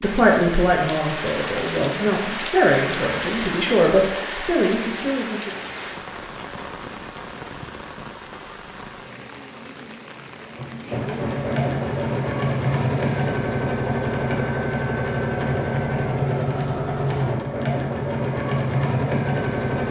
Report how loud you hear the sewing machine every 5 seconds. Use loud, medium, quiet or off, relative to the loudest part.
off, off, loud, loud.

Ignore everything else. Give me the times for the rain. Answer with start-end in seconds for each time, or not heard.
0.0-13.3.